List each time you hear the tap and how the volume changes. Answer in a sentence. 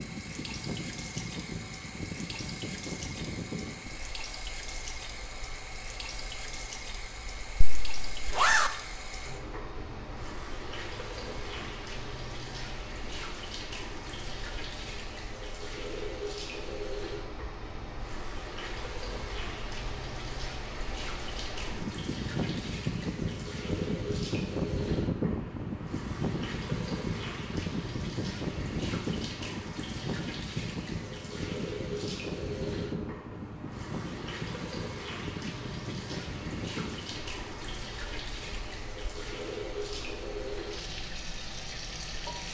The tap can be heard from 0.0 to 42.4 s, at a steady volume.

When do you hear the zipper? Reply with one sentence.
The zipper can be heard from 7.6 to 8.7 s.